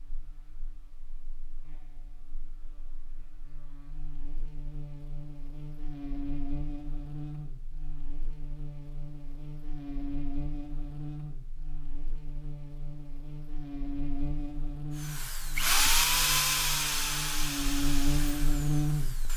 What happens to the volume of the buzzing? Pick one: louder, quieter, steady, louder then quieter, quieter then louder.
louder.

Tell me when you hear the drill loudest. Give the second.
16 s.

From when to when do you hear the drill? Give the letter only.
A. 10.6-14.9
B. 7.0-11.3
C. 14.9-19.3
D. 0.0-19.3
C.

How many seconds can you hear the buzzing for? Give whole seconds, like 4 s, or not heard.
19 s.